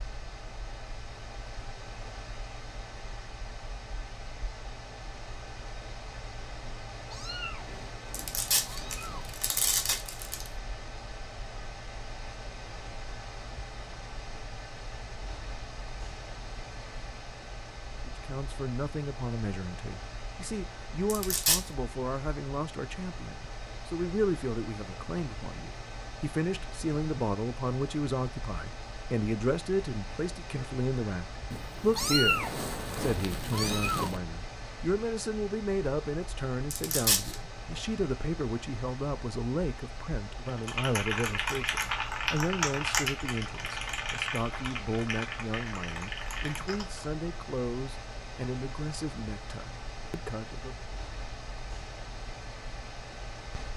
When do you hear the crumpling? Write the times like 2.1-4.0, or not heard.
8.1-10.5, 21.1-21.6, 36.7-37.4.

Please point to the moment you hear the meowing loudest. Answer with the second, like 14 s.
32 s.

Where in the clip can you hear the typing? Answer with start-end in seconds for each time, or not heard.
40.5-47.1.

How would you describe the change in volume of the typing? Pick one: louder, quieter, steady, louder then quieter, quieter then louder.
quieter.